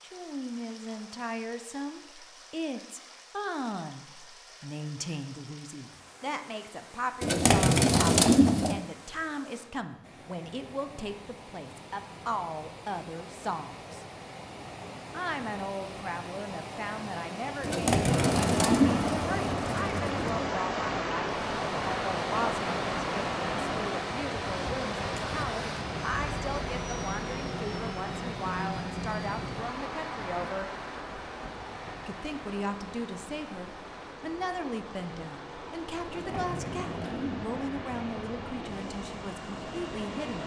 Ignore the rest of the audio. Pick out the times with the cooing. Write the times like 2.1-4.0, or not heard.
7.2-8.8, 17.6-20.5, 36.0-38.8.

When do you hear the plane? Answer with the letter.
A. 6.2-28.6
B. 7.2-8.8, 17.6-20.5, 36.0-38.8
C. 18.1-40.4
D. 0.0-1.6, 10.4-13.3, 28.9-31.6
C.